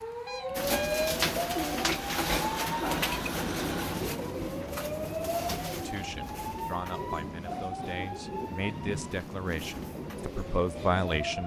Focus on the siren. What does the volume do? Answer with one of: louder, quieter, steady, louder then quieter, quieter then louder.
quieter.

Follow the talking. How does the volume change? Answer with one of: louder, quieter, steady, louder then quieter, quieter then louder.
louder.